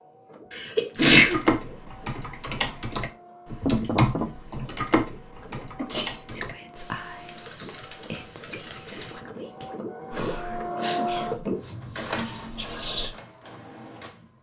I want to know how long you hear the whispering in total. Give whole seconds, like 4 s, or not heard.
7 s.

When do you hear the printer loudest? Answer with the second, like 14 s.
11 s.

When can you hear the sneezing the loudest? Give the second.
1 s.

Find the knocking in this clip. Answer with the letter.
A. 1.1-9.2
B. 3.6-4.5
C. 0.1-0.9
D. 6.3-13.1
B.